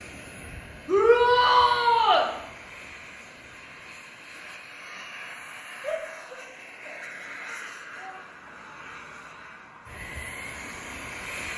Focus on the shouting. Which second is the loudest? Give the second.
1 s.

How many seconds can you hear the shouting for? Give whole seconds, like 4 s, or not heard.
4 s.